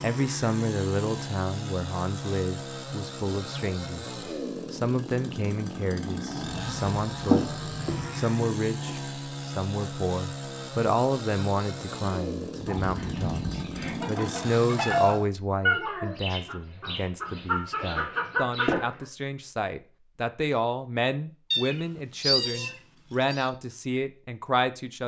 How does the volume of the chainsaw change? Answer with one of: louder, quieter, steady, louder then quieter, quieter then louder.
steady.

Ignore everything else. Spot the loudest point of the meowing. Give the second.
22 s.